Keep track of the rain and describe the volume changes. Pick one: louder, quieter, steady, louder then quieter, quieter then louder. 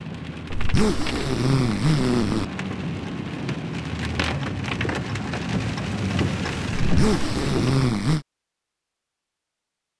louder.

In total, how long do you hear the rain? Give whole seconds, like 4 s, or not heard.
8 s.